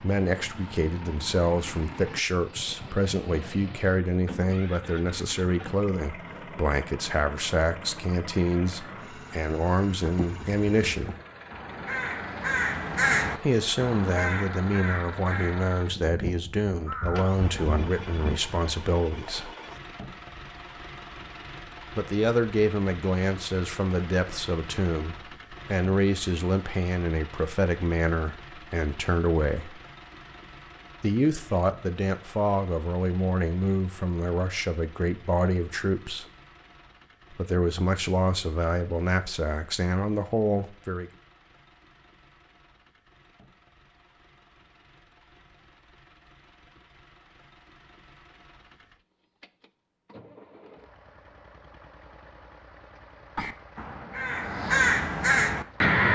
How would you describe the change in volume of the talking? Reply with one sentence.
The loudness of the talking stays about the same.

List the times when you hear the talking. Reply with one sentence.
You can hear the talking from 0.0 to 11.1 s, from 13.3 to 19.5 s, from 21.9 to 29.8 s, from 31.0 to 36.2 s and from 37.3 to 41.1 s.